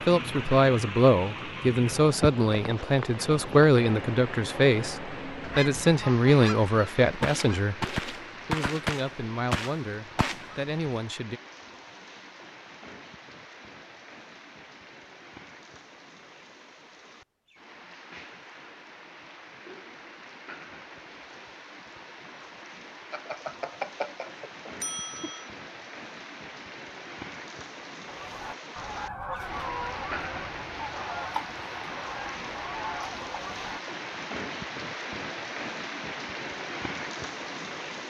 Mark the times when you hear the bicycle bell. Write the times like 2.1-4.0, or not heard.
23.1-25.4.